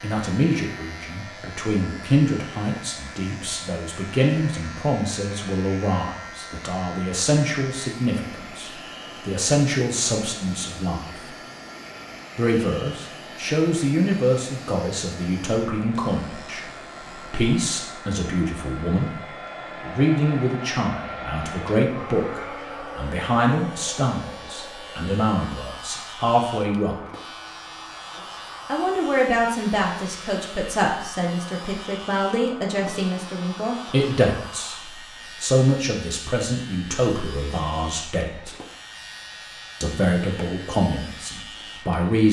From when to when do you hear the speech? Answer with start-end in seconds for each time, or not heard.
0.0-11.3, 12.3-26.9, 28.6-38.5, 39.8-42.2.